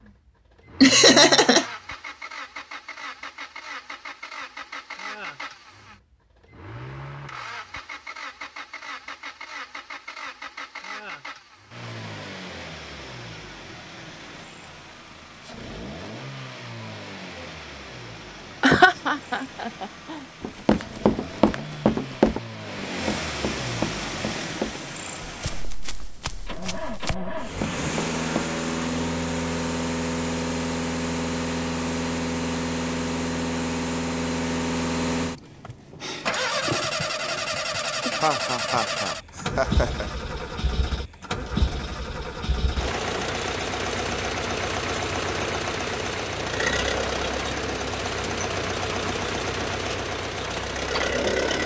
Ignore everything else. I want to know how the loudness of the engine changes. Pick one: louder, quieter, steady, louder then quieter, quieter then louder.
louder.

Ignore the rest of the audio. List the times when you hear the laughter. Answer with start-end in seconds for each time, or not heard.
0.8-1.6, 18.6-20.2, 38.2-40.0.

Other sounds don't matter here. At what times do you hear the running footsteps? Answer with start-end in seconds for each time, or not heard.
20.4-28.4.